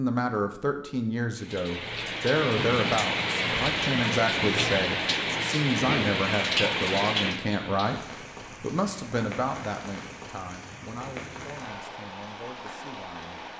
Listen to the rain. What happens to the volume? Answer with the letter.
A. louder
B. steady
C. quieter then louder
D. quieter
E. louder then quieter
D.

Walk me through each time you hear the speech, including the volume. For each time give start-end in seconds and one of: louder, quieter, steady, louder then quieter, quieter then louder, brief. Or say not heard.
0.0-13.4 quieter.